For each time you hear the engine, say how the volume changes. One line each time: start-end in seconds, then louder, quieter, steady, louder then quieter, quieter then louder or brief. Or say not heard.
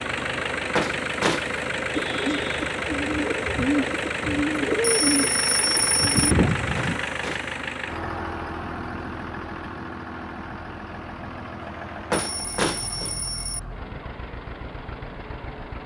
0.0-15.8 quieter.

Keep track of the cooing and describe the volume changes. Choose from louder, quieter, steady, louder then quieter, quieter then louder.
louder.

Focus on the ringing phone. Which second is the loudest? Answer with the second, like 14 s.
6 s.